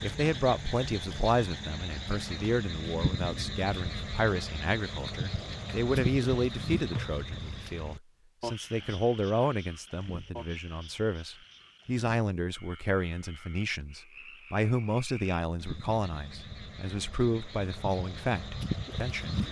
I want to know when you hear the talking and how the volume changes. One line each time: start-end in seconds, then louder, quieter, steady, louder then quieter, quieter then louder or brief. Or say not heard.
0.0-19.4 steady.